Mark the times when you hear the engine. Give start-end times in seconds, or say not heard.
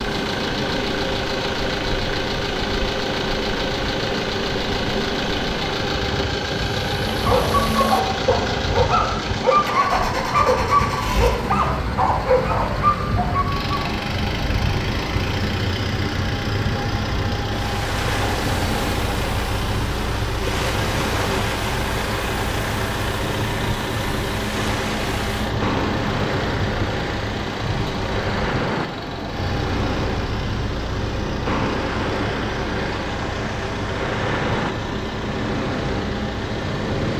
0.0-37.1.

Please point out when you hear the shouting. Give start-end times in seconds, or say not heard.
not heard.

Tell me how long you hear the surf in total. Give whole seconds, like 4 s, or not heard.
37 s.